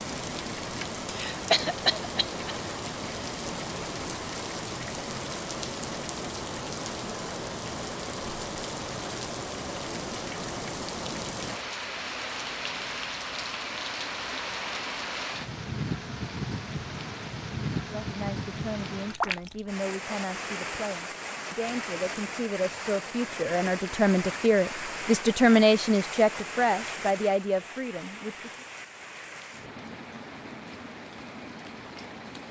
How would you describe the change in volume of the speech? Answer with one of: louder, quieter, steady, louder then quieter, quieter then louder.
louder then quieter.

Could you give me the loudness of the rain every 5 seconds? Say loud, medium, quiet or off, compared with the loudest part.
loud, loud, loud, loud, loud, medium, medium.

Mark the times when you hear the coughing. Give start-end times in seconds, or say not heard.
1.1-2.4.